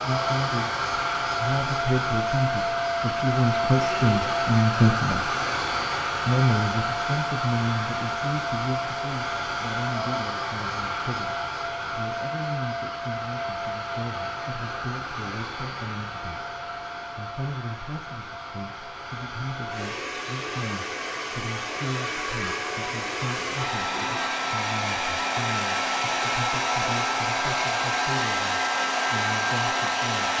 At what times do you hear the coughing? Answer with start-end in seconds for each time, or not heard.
not heard.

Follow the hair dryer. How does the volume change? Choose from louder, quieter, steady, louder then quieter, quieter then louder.
quieter then louder.